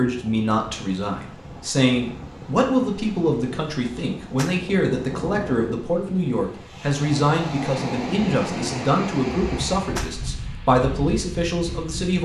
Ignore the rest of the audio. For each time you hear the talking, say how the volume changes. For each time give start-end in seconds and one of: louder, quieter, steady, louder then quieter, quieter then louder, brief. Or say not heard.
0.0-12.2 steady.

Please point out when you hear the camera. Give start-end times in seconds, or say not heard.
not heard.